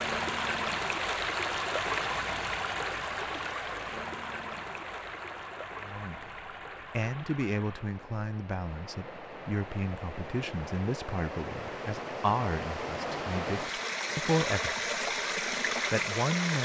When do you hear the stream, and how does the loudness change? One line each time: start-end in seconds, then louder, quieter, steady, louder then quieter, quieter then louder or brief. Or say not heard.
0.0-16.6 quieter then louder.